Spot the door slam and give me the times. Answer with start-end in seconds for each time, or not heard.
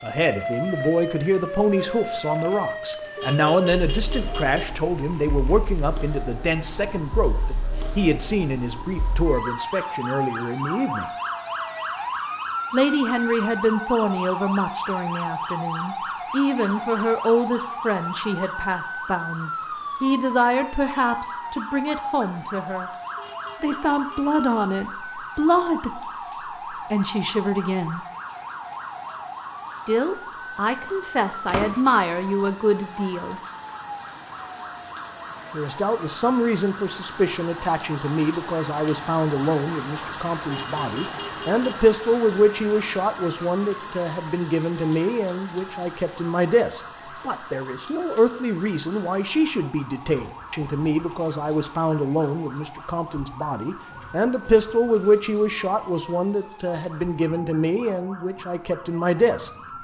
31.4-31.9.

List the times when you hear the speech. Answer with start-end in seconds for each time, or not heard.
0.0-11.1, 12.7-22.9, 23.6-26.0, 26.7-28.0, 29.9-33.4, 35.5-59.5.